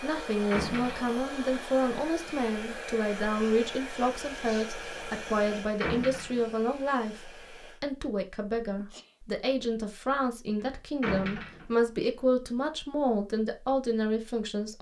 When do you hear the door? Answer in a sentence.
The door can be heard from 0.5 to 1.2 s, from 5.8 to 6.5 s and from 11.0 to 11.8 s.